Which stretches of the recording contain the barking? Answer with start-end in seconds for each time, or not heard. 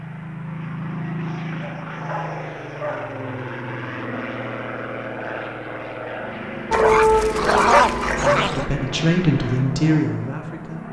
1.6-3.4, 6.7-8.7.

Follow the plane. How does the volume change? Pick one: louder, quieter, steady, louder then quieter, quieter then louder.
steady.